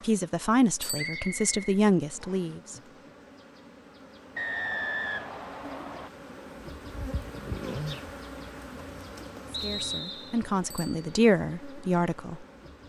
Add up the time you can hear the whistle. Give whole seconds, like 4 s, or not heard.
4 s.